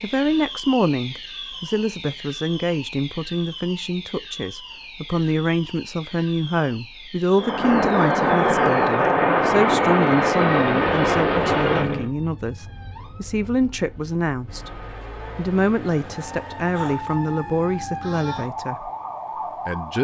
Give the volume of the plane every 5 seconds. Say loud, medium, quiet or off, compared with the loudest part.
off, loud, loud, off.